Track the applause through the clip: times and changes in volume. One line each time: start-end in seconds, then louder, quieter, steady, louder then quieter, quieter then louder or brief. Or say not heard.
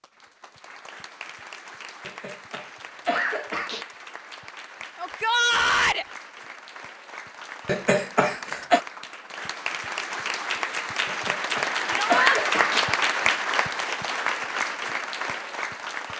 0.0-16.1 louder.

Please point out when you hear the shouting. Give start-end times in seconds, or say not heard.
5.0-6.0, 11.9-12.4.